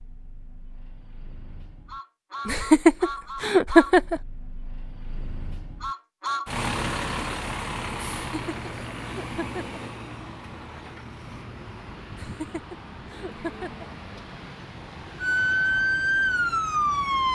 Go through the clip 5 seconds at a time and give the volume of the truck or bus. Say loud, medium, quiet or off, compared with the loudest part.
medium, loud, medium, medium.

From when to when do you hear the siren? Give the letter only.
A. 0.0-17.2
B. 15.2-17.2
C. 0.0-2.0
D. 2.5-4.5
B.